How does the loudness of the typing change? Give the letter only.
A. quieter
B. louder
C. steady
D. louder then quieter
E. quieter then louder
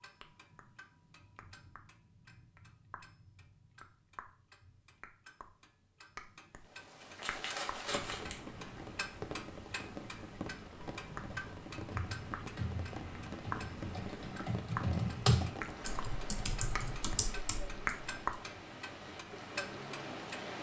D.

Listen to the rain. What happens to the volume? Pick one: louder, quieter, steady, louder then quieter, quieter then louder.
steady.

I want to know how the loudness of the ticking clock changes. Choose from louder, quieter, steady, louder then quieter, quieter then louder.
louder.